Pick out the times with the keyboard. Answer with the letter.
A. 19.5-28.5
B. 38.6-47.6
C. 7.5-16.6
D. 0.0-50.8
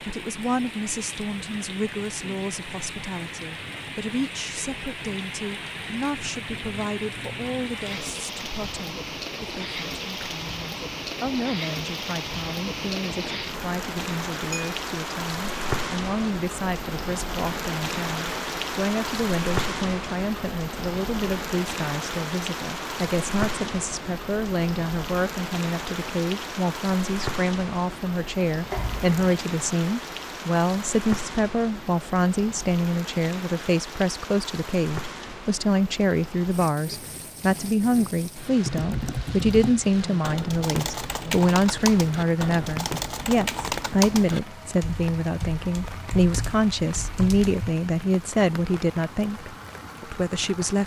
B.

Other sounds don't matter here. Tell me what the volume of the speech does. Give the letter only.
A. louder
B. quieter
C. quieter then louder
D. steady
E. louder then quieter
A.